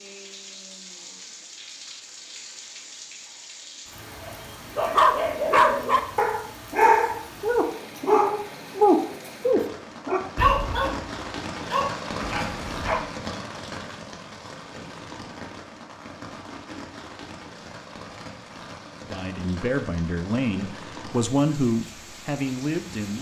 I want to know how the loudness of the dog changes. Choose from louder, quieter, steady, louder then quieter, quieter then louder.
quieter.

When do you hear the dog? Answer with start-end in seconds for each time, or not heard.
4.2-13.2.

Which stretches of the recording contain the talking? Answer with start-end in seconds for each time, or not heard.
19.1-23.1.